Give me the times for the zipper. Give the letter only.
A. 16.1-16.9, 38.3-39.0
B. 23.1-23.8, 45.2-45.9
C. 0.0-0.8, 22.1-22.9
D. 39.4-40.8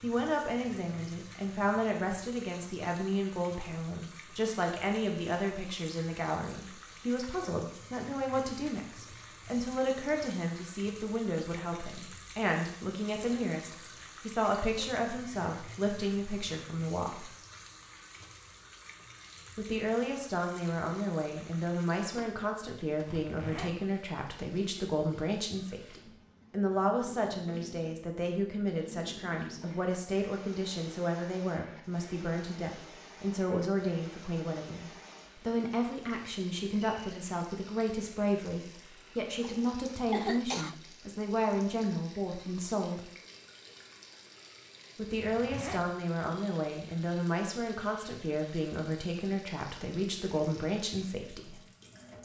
B.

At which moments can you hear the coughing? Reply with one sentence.
You can hear the coughing from 39.4 to 40.8 s.